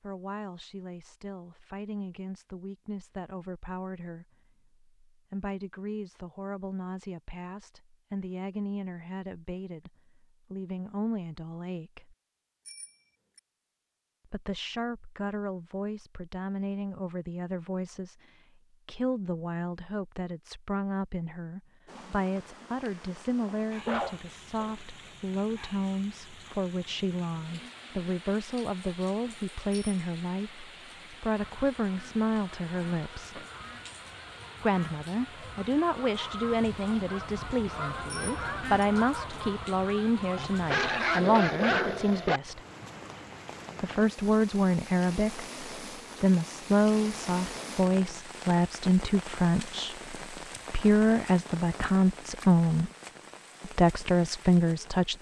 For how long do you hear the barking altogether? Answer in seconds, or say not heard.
3 s.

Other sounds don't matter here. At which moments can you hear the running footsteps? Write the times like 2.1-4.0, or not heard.
not heard.